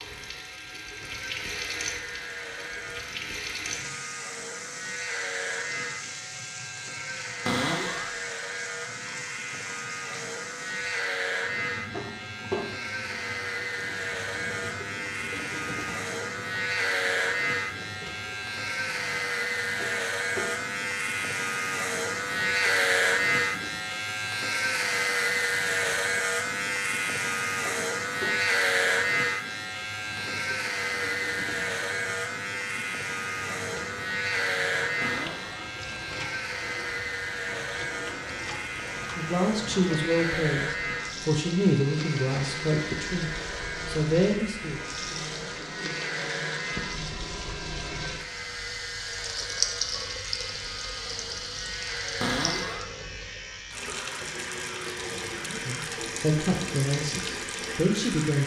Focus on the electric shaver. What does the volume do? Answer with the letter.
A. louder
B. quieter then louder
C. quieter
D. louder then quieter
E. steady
D.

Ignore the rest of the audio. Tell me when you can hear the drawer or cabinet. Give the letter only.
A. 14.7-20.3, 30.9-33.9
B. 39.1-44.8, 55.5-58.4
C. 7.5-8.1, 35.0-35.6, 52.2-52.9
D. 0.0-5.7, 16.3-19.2
C.